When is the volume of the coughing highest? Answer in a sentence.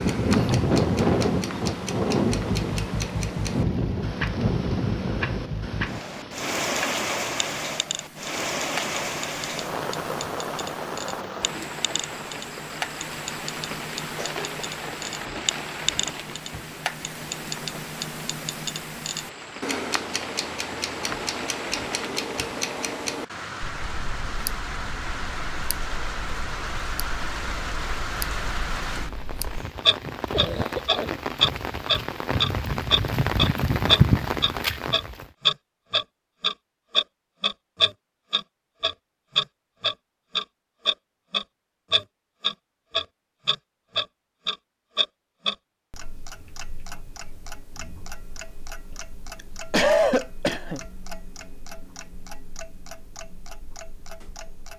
The loudest moment of the coughing is at 50 seconds.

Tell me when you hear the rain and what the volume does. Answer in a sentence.
You can hear the rain from 0.0 to 35.3 s, getting quieter then louder.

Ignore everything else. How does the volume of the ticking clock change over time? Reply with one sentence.
The loudness of the ticking clock goes up, then down.